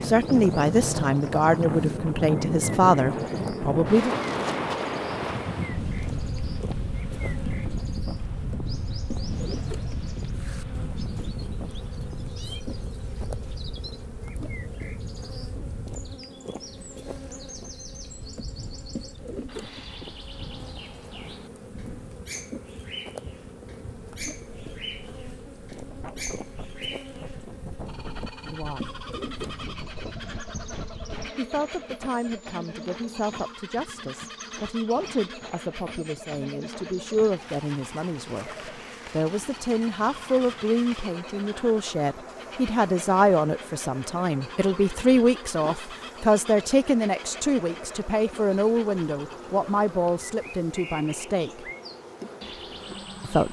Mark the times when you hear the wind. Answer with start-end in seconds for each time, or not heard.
0.0-31.4.